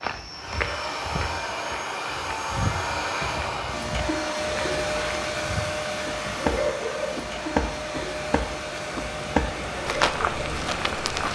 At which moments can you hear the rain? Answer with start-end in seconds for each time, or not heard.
4.3-11.3.